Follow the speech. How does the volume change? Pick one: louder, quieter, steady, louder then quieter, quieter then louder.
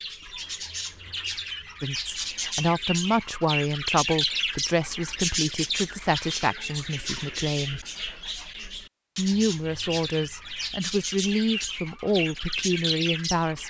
steady.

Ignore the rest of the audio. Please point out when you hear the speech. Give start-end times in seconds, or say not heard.
1.8-7.8, 9.2-13.6.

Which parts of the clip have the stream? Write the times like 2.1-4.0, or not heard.
not heard.